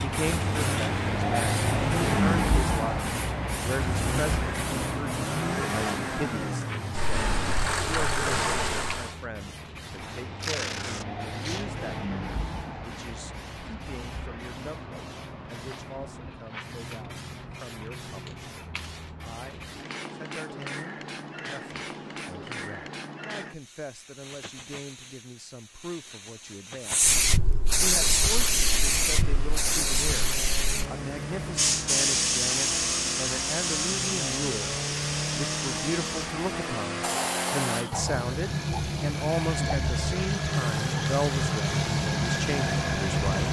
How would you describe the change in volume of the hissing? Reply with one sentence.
The volume of the hissing goes down, then up.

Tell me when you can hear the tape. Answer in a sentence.
The tape can be heard from 10.4 to 11.7 s.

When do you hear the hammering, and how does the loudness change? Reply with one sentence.
The hammering can't be heard in this clip.